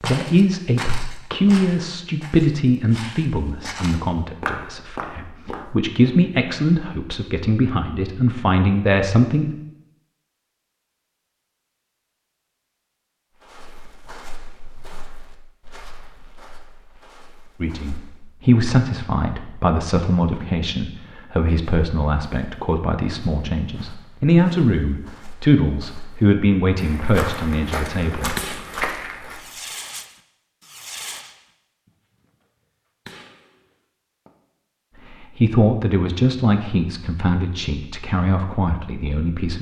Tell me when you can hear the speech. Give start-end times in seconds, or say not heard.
0.0-9.5, 17.6-28.4, 35.0-39.5.